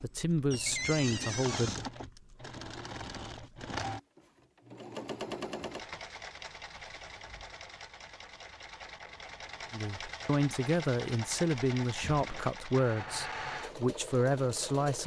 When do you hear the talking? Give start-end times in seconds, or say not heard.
0.0-1.8, 9.7-15.0.